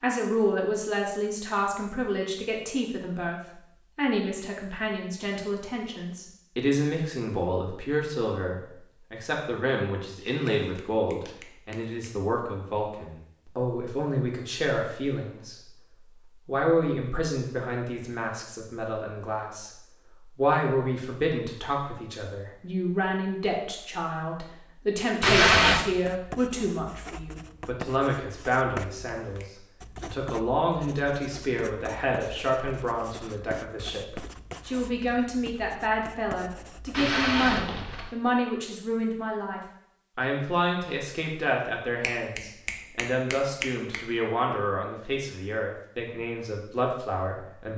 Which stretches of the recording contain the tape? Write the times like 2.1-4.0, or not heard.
10.2-11.3, 25.2-25.9, 36.9-38.1.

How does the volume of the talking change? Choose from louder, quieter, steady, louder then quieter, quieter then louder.
steady.